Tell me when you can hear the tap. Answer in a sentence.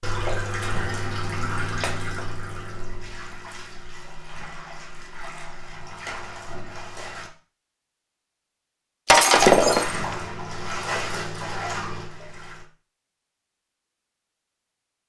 You can hear the tap from 0.0 to 7.3 s and from 9.4 to 12.7 s.